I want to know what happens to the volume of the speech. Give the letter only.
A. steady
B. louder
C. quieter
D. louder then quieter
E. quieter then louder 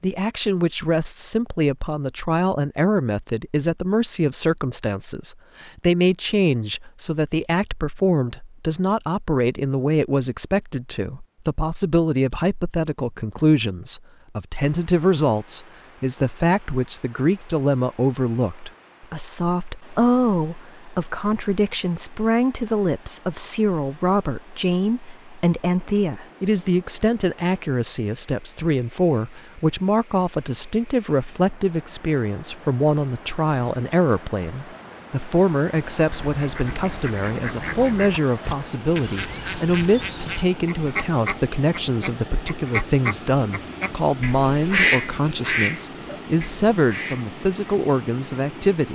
A.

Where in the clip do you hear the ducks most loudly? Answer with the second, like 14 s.
45 s.